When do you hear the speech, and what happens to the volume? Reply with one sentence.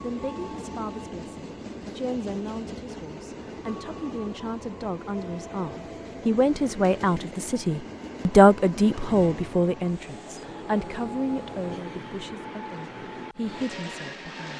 You can hear the speech from 0.0 to 14.5 s, getting louder then quieter.